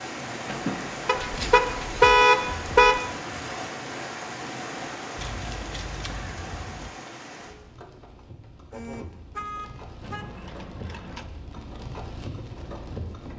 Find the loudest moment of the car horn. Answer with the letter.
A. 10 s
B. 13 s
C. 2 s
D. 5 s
C.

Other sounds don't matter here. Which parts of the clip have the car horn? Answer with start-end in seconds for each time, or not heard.
1.1-3.0, 8.7-10.5.